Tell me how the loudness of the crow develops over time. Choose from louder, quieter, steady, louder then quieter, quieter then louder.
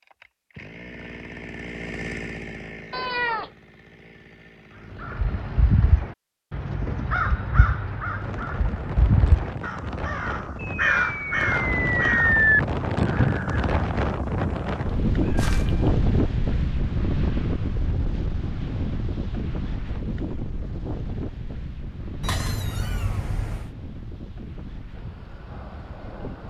louder.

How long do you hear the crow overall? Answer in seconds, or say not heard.
9 s.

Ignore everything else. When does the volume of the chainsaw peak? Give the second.
2 s.